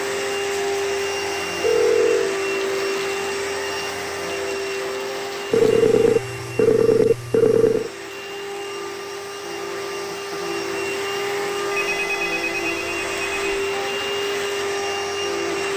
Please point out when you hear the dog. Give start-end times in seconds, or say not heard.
not heard.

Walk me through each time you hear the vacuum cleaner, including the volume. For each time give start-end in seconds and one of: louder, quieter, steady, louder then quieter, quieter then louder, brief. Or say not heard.
0.0-15.7 quieter then louder.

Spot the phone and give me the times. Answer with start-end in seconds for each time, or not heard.
1.6-2.4, 5.5-7.9, 11.7-13.6.